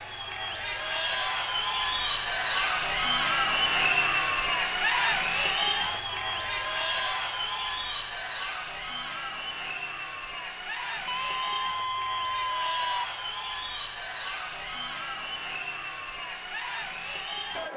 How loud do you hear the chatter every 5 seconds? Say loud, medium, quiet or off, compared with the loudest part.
loud, loud, medium, medium.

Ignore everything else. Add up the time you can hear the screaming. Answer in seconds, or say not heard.
3 s.